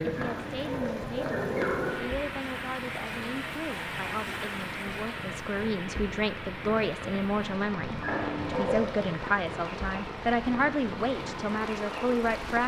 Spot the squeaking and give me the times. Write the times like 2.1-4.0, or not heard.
0.1-2.0, 8.0-8.9.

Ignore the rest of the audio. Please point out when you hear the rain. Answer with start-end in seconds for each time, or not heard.
0.0-12.6.